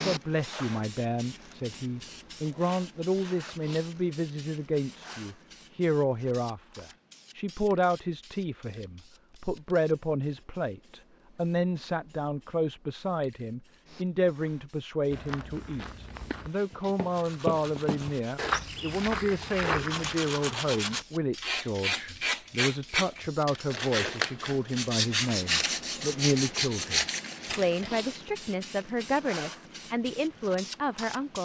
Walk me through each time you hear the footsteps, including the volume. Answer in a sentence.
You can hear the footsteps from 15.1 to 20.1 s, getting louder.